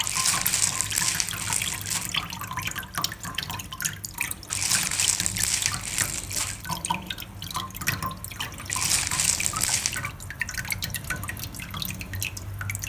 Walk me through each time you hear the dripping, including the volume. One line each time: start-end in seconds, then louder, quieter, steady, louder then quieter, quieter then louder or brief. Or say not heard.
0.0-12.8 steady.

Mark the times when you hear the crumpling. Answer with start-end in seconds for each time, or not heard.
0.0-2.1, 4.5-6.7, 8.7-10.1.